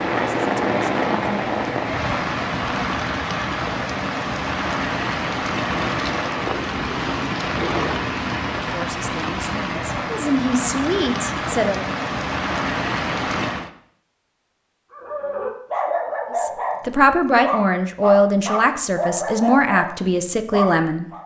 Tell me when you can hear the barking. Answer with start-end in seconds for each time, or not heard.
14.9-21.2.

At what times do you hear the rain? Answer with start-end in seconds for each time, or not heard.
0.0-13.7.